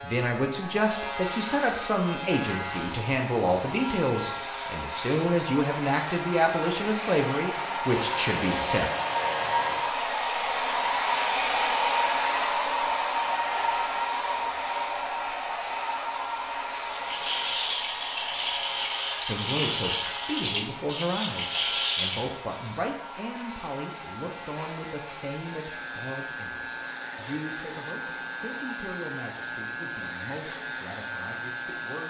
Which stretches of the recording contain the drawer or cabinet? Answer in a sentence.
You can't hear the drawer or cabinet here.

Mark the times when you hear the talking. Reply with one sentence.
The talking can be heard from 0.0 to 8.9 s and from 19.2 to 32.0 s.